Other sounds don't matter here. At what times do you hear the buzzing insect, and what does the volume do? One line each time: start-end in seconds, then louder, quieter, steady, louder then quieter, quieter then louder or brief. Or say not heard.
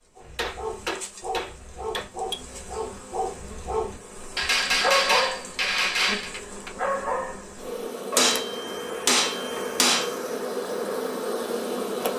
0.0-12.1 louder.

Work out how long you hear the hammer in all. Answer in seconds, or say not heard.
6 s.